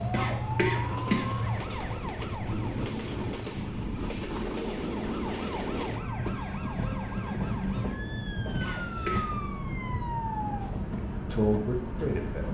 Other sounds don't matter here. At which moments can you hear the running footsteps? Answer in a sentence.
You can't hear the running footsteps here.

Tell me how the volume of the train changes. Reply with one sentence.
The volume of the train stays about the same.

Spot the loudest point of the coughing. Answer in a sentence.
The loudest moment of the coughing is at 1 second.